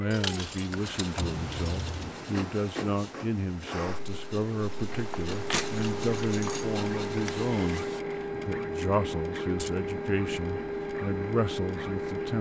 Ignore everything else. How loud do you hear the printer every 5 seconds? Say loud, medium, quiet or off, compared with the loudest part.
medium, loud, loud.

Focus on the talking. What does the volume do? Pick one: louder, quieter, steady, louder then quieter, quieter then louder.
steady.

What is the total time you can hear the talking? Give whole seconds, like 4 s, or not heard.
12 s.